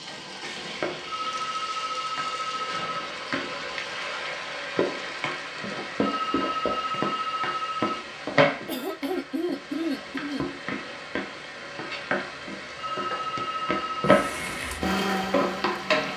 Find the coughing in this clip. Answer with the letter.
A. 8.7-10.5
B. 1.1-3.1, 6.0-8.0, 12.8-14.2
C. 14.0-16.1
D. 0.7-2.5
A.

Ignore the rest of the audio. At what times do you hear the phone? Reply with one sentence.
You can hear the phone from 1.1 to 3.1 s, from 6.0 to 8.0 s and from 12.8 to 14.2 s.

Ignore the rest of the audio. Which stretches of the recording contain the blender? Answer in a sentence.
You can hear the blender from 14.0 to 16.1 s.